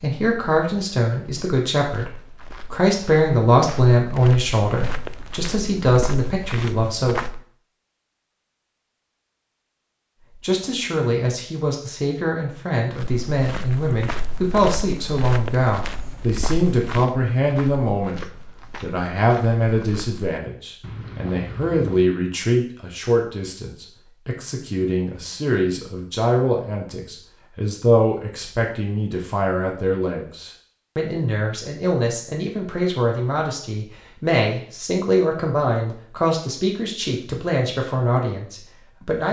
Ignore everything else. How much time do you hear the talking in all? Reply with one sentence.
The talking can be heard for 36 seconds in total.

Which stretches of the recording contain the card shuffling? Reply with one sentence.
The card shuffling can't be heard in this clip.